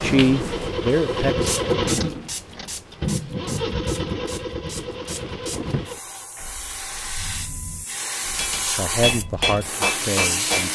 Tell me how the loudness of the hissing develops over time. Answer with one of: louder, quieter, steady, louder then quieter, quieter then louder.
quieter then louder.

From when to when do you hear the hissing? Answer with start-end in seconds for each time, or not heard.
0.0-10.7.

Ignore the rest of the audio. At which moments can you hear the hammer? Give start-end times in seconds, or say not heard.
8.3-10.7.